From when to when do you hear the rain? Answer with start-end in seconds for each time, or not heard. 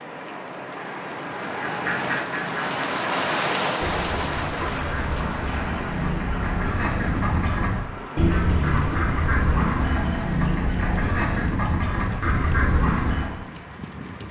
0.0-14.2.